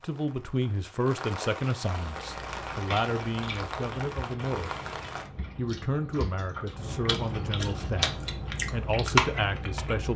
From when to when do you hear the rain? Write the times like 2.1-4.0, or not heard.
0.0-5.3.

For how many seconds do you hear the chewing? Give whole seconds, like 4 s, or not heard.
8 s.